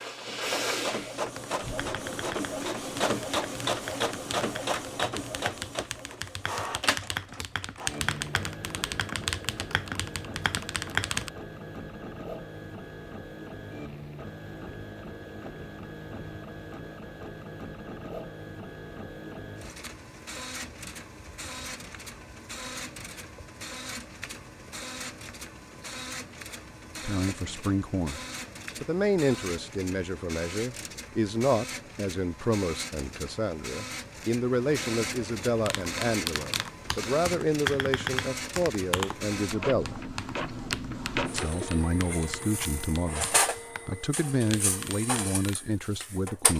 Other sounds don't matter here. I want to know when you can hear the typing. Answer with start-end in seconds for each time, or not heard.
1.4-11.3, 35.6-45.5.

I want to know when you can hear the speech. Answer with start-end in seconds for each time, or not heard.
27.1-28.2, 28.8-40.0, 41.3-46.5.